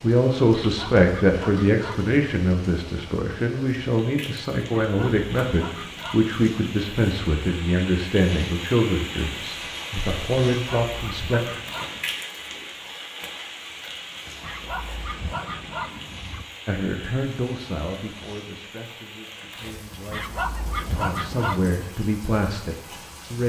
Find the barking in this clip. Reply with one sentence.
The barking can be heard from 0.6 to 2.1 s, from 4.8 to 6.3 s, from 10.6 to 12.2 s, from 14.4 to 16.4 s and from 20.1 to 21.9 s.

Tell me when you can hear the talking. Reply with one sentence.
You can hear the talking from 0.0 to 11.4 s and from 16.6 to 23.4 s.